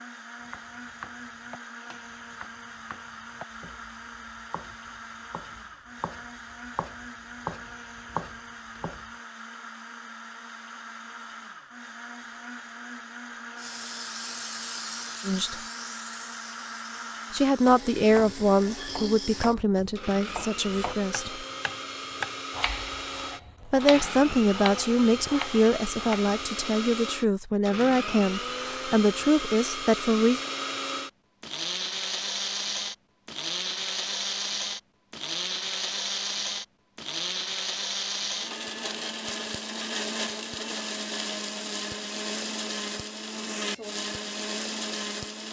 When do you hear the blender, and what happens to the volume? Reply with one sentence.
You can hear the blender from 0.0 to 45.4 s, getting louder.